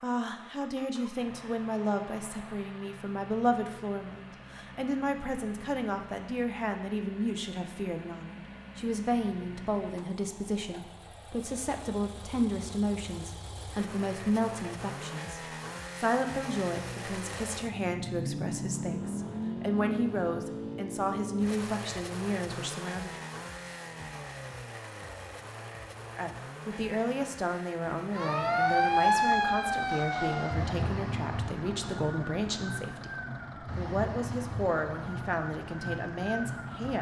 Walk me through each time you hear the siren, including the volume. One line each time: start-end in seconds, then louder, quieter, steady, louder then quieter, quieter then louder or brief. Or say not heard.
28.1-36.9 quieter.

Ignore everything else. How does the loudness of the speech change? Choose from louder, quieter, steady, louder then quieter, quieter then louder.
steady.